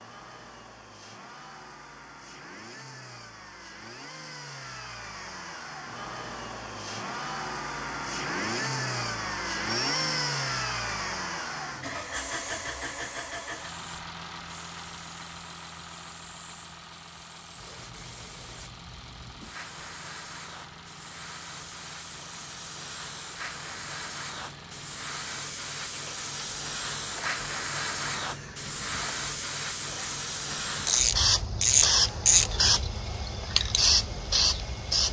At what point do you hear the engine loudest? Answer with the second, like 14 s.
10 s.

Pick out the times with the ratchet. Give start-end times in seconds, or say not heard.
30.9-32.5.